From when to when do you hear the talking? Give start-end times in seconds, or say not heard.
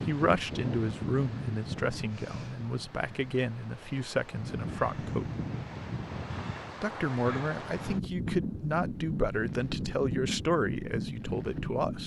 0.1-5.3, 6.8-12.0.